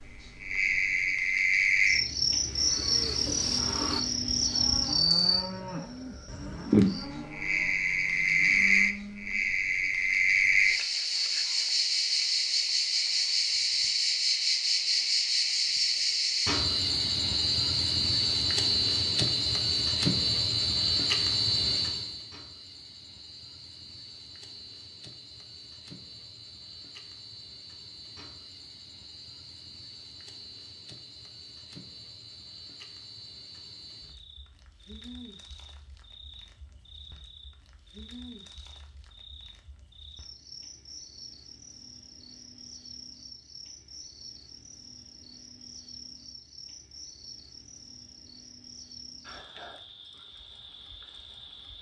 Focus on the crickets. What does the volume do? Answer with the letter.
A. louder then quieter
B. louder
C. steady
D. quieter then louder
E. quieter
E.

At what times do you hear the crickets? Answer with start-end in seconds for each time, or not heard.
0.0-51.7.